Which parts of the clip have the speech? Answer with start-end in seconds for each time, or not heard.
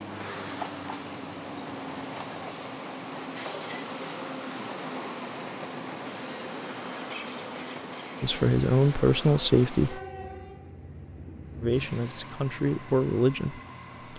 8.2-10.0, 11.6-14.1.